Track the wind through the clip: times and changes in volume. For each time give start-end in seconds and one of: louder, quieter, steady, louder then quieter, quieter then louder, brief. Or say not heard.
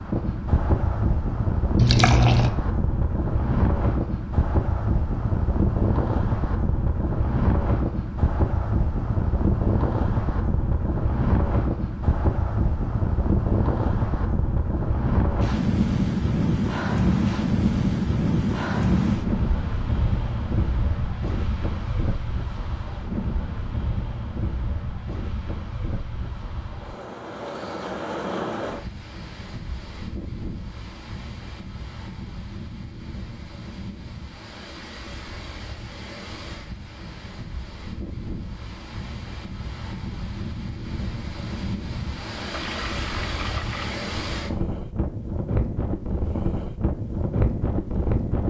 0.0-48.4 quieter then louder.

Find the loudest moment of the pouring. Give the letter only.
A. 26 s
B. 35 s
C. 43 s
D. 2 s
D.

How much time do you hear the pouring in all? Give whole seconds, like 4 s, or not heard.
2 s.